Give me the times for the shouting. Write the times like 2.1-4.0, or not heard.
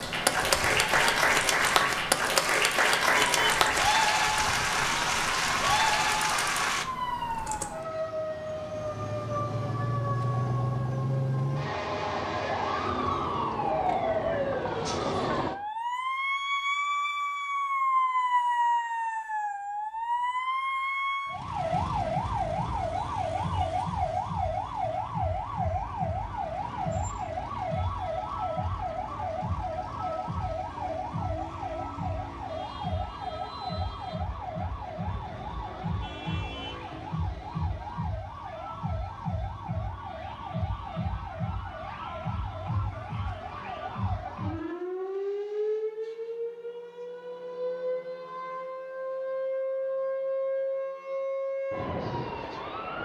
not heard.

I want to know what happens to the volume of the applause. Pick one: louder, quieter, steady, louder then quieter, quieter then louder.
steady.